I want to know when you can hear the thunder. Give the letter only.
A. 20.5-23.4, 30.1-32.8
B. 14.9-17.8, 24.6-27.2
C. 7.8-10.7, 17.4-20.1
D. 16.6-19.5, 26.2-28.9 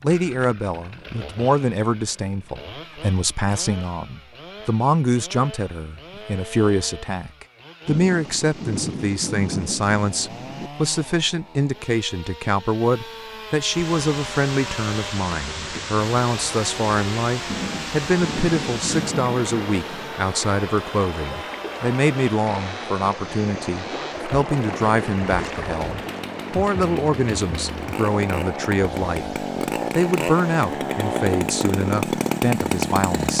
C.